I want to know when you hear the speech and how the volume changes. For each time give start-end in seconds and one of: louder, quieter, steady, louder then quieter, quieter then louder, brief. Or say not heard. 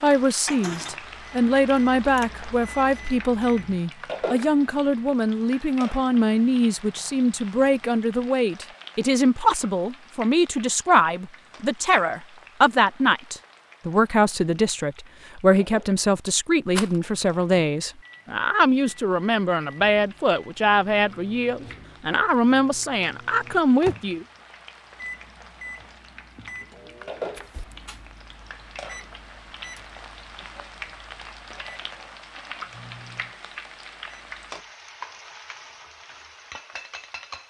0.0-24.2 steady.